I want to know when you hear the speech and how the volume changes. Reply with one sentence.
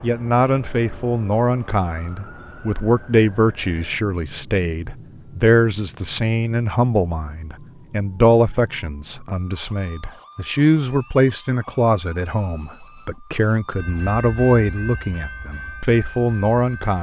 You can hear the speech from 0.0 to 16.9 s, at a steady volume.